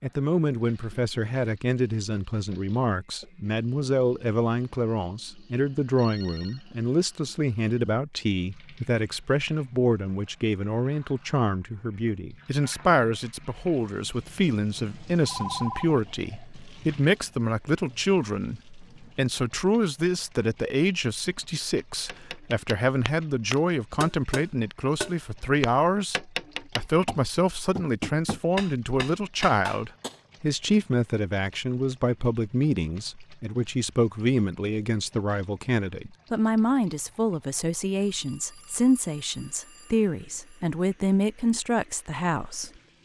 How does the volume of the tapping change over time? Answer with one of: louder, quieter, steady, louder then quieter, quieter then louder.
steady.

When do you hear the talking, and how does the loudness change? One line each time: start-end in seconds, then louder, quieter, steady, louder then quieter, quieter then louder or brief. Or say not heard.
0.0-42.7 steady.